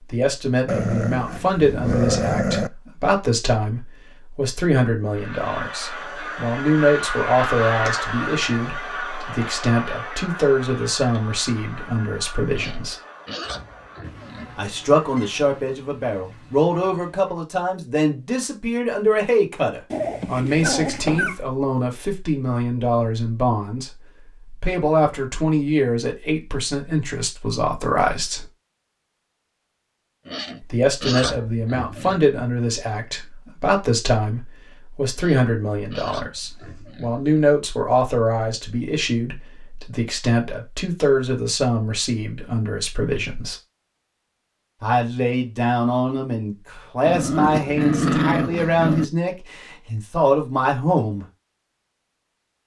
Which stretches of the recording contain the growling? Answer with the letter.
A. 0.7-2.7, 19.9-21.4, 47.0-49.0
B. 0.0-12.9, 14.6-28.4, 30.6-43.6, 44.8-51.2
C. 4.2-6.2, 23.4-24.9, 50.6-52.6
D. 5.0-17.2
A.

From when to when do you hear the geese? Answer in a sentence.
The geese can be heard from 5.0 to 17.2 s.